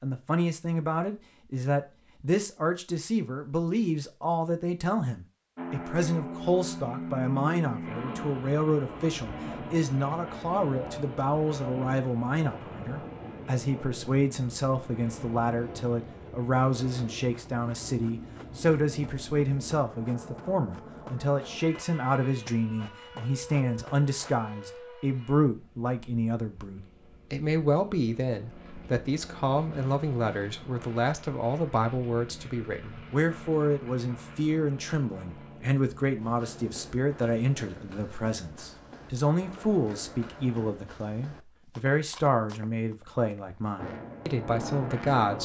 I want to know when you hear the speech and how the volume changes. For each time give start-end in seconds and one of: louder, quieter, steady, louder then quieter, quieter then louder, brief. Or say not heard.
0.0-45.3 steady.